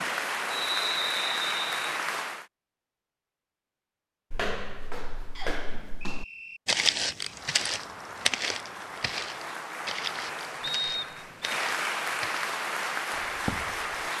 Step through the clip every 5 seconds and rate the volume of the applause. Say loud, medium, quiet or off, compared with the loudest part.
loud, medium, loud.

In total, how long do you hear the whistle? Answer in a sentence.
You can hear the whistle for 4 seconds altogether.